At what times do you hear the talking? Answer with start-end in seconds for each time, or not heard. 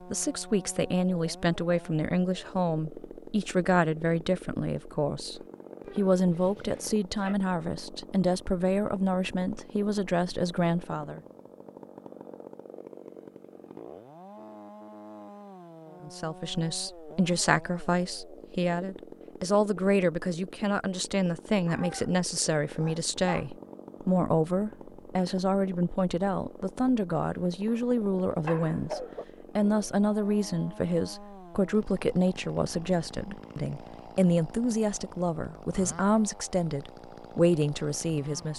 0.1-11.2, 16.0-38.5.